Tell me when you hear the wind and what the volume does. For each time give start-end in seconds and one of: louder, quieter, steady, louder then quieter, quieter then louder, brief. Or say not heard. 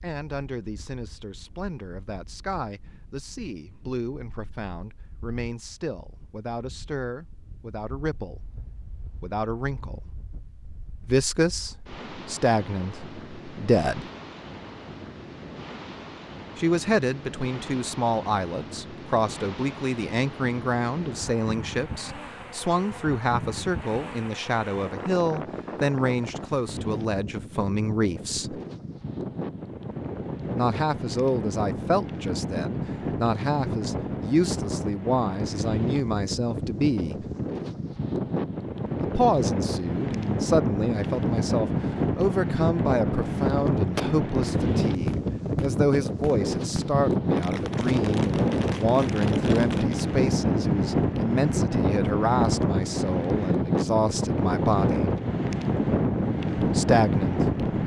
0.0-57.8 louder.